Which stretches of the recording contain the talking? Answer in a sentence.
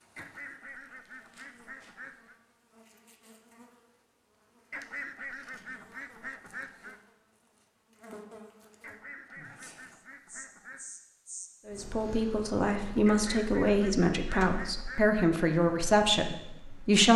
The talking can be heard from 11.7 to 17.1 s.